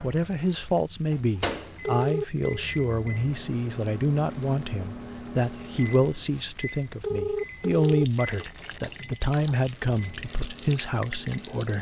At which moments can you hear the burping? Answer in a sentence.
The burping can't be heard in this clip.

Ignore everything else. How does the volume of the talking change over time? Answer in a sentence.
The volume of the talking stays about the same.